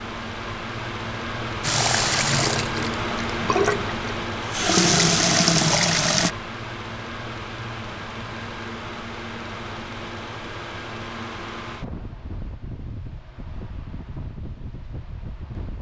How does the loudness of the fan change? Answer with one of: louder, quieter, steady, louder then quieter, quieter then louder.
quieter.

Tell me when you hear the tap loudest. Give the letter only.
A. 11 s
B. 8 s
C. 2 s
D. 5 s
D.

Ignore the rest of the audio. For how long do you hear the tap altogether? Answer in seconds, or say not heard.
5 s.